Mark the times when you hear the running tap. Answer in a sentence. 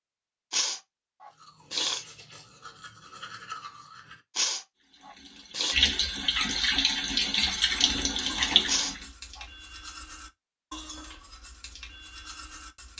The running tap can be heard from 4.8 to 9.1 s.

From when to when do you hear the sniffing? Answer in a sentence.
The sniffing can be heard from 0.5 to 2.0 s, from 4.3 to 5.8 s and from 8.7 to 9.4 s.